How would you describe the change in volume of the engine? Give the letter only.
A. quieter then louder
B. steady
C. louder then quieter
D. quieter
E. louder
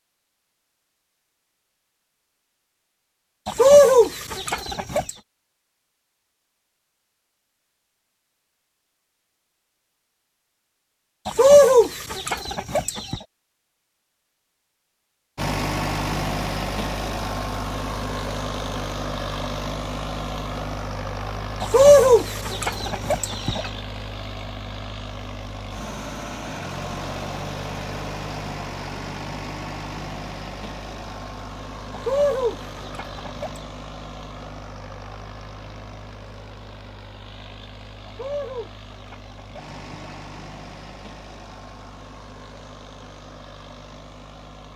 D.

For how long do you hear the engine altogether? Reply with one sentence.
The engine can be heard for 29 seconds in total.